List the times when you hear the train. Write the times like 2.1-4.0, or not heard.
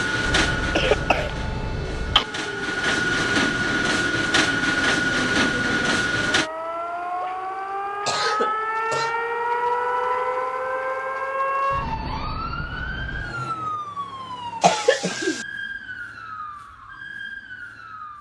0.0-6.5.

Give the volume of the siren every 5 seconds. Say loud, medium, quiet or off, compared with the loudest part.
medium, loud, loud, medium.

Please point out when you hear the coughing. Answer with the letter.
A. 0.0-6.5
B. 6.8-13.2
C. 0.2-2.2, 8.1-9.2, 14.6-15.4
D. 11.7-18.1
C.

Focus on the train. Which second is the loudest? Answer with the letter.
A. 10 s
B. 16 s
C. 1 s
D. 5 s
D.